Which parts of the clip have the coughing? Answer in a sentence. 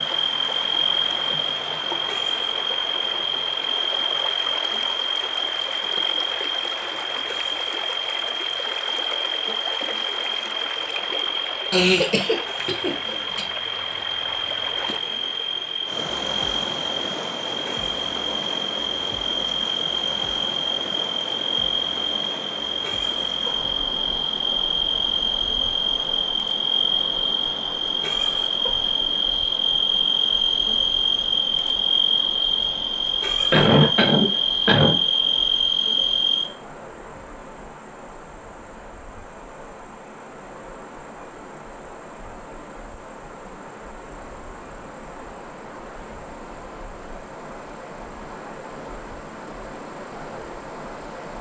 You can hear the coughing from 11.7 to 13.4 s and from 33.5 to 35.0 s.